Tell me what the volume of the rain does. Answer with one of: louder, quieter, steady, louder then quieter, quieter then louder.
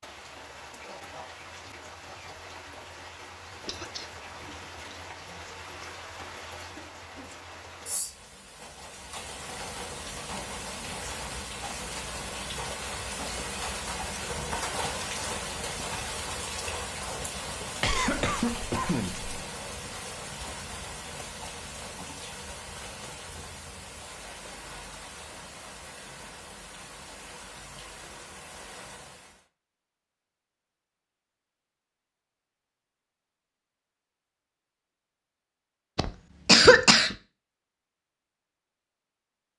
louder then quieter.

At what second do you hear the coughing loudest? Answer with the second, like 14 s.
37 s.